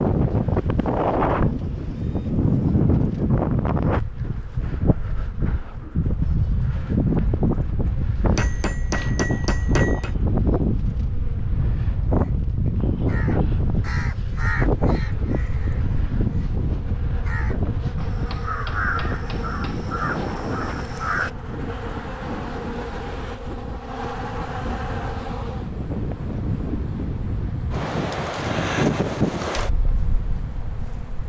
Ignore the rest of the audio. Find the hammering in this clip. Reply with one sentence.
You can hear the hammering from 8.3 to 10.1 s and from 18.1 to 19.9 s.